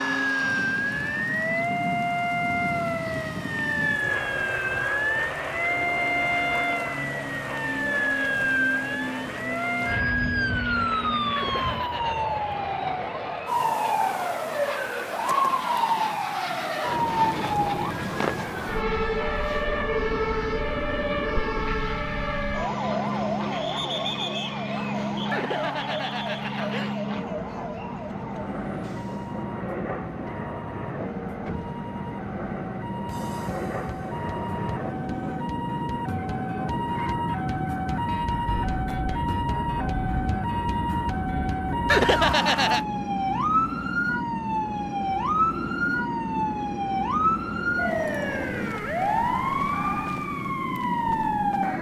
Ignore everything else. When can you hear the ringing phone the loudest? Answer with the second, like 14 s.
42 s.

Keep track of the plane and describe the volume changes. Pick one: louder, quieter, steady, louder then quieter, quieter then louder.
steady.